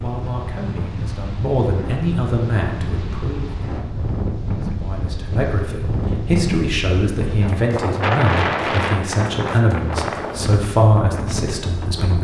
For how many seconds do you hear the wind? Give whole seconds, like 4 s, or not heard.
12 s.